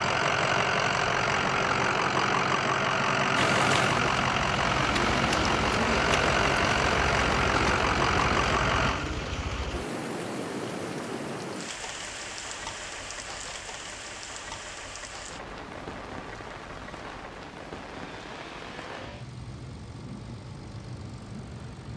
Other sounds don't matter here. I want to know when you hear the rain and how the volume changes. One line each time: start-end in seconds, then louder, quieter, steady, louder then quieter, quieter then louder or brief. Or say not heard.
3.4-21.9 quieter.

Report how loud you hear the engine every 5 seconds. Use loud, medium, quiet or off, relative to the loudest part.
loud, loud, quiet, quiet, quiet.